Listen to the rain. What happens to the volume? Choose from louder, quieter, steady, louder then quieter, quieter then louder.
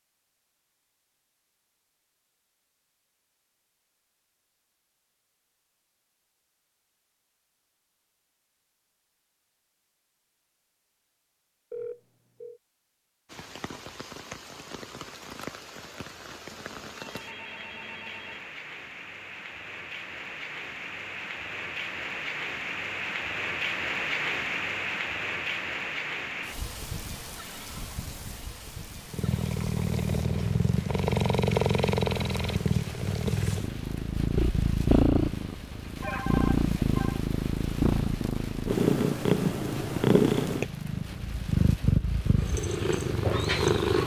louder then quieter.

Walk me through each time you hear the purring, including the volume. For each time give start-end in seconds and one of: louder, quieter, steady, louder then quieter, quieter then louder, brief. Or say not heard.
29.1-44.0 steady.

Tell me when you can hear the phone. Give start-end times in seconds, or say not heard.
11.7-12.6, 16.5-18.4, 36.0-37.2.